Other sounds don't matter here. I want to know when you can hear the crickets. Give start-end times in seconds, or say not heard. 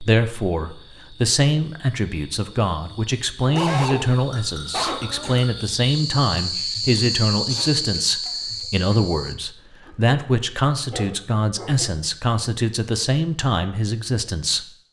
0.0-9.3.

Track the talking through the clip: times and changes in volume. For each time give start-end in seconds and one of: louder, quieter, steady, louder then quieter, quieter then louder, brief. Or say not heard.
0.0-14.7 steady.